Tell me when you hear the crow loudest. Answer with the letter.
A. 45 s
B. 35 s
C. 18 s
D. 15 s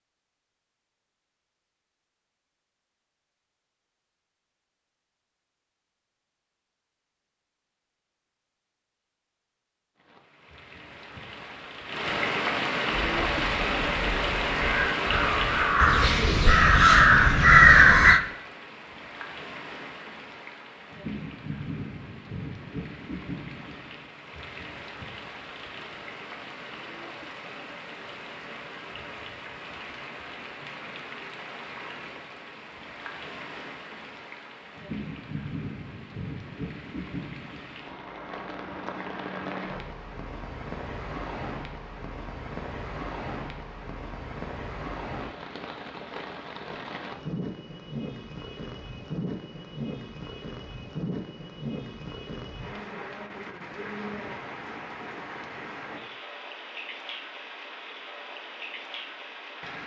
C.